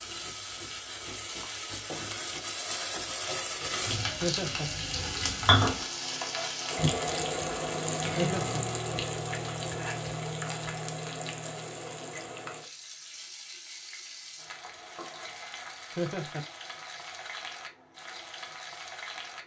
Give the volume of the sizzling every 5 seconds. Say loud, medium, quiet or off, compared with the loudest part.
medium, loud, medium, quiet.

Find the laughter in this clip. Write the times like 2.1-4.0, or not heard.
4.2-4.7, 8.2-8.7, 15.9-16.4.